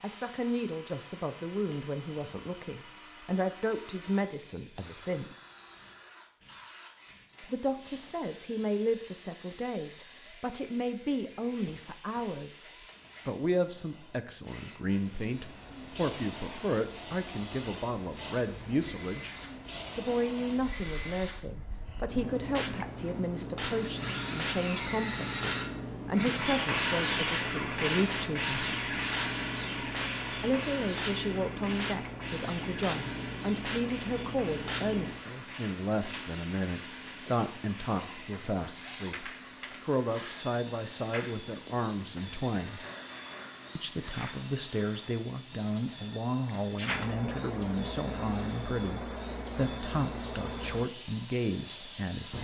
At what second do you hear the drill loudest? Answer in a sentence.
The loudest moment of the drill is at 27 seconds.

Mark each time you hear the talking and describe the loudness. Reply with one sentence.
You can hear the talking from 0.0 to 5.3 s, getting quieter then louder; from 7.4 to 19.4 s, at a steady volume; from 19.9 to 28.6 s, at a steady volume; from 30.4 to 42.9 s, at a steady volume; and from 43.8 to 52.3 s, at a steady volume.